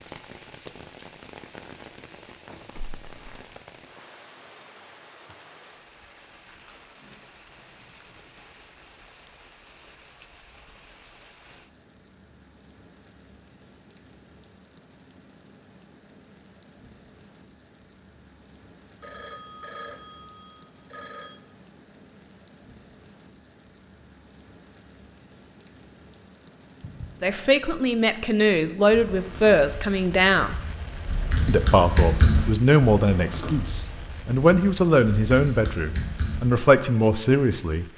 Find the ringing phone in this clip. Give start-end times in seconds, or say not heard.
2.5-3.6, 19.0-21.4, 26.8-27.2.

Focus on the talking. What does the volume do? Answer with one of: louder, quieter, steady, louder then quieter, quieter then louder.
steady.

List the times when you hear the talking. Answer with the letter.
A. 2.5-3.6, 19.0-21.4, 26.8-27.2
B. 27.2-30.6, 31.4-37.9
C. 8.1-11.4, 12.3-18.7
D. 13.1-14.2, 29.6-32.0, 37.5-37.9
B.